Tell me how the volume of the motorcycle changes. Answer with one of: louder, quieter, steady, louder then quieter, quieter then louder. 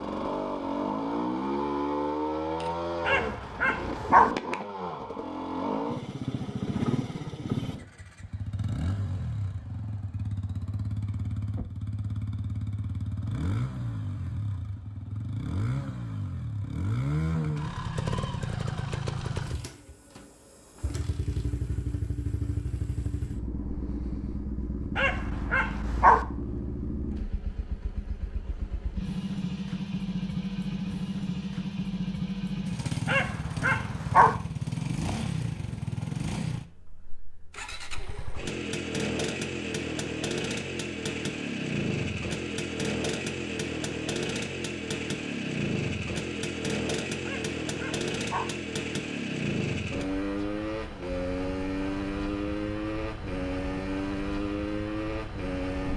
steady.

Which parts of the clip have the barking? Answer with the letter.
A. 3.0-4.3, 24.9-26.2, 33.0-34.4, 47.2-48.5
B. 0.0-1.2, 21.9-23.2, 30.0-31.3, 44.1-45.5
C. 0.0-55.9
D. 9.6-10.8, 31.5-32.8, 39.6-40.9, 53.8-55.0
A.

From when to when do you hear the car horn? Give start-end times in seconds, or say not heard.
not heard.